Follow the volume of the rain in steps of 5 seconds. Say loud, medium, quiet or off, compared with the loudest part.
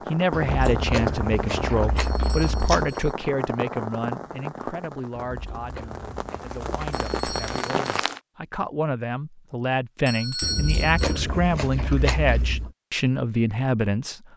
loud, loud, off.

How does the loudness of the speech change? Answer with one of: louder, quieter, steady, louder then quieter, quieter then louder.
quieter then louder.